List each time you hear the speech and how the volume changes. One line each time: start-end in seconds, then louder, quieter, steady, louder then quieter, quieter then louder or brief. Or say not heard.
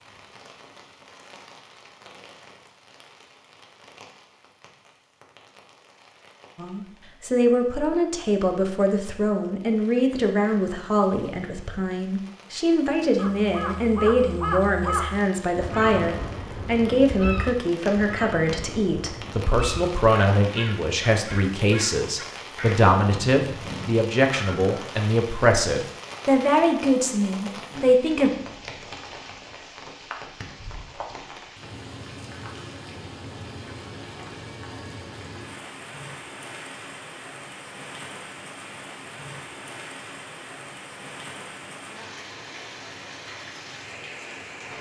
6.5-28.3 steady.